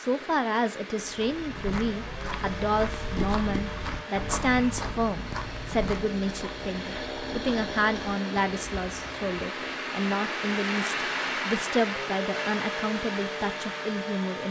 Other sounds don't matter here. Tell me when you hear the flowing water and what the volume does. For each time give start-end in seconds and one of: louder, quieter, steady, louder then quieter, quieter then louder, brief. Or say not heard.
0.0-14.4 louder.